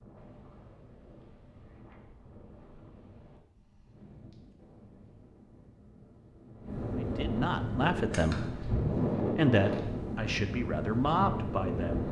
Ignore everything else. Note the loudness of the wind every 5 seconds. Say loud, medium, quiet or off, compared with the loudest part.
quiet, loud, loud.